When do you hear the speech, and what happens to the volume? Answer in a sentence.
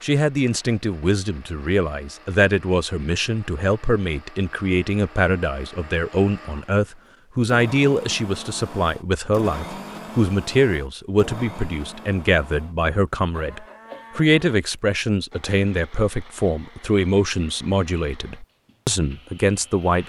The speech can be heard from 0.0 to 20.0 s, at a steady volume.